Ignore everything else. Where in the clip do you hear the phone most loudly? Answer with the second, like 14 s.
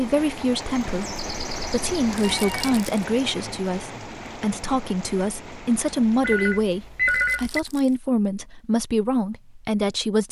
7 s.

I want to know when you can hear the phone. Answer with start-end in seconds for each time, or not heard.
0.9-2.8, 6.2-7.6.